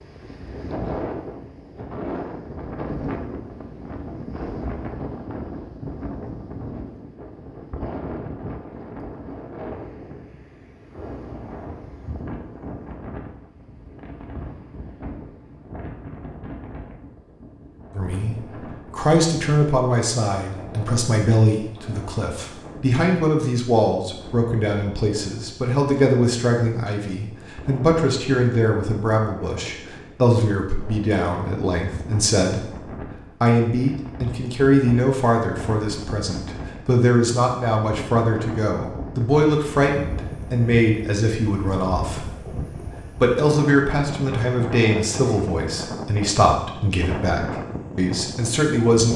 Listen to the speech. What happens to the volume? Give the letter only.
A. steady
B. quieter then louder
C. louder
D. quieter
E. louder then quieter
A.